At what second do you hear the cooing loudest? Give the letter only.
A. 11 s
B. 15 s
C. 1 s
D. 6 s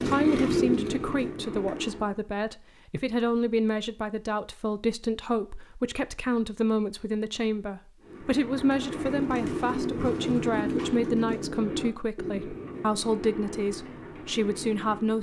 C.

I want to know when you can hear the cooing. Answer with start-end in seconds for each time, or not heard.
0.0-2.1, 8.0-15.1.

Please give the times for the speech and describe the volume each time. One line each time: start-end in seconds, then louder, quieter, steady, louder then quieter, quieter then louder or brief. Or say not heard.
0.0-15.1 steady.